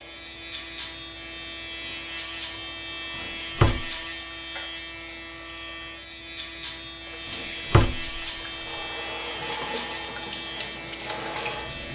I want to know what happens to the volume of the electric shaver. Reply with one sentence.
The loudness of the electric shaver stays about the same.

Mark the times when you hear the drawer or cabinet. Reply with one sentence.
The drawer or cabinet can be heard from 3.5 to 4.0 s and from 7.3 to 8.2 s.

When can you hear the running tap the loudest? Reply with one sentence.
The loudest moment of the running tap is at 11 seconds.